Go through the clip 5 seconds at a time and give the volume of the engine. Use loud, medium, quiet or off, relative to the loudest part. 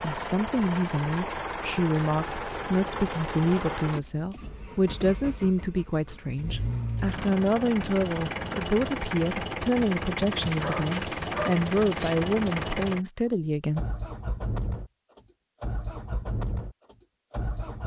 loud, loud, loud, medium.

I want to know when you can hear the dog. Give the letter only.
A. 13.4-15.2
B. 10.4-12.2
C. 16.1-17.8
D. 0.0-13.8
B.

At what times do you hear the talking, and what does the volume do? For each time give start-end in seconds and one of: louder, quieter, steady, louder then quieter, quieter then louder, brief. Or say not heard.
0.0-13.8 steady.